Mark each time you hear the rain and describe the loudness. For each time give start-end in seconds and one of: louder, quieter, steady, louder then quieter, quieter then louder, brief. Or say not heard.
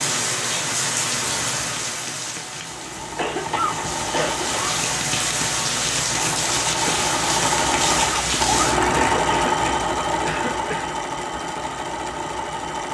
0.0-8.8 quieter then louder.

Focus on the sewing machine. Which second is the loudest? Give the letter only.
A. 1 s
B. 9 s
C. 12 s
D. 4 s
B.